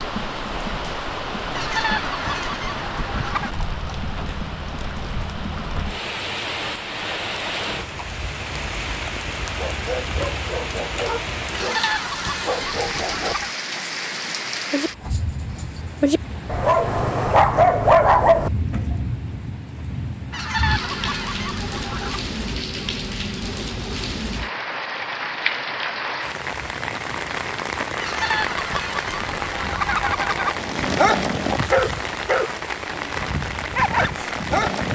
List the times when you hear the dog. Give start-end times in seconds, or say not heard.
9.6-18.8, 30.5-34.9.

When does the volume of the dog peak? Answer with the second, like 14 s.
18 s.